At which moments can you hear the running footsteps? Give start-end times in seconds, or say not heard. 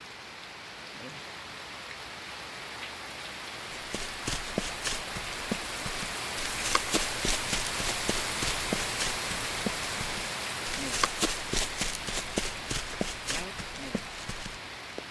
3.8-15.0.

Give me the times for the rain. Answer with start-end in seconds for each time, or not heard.
0.0-15.0.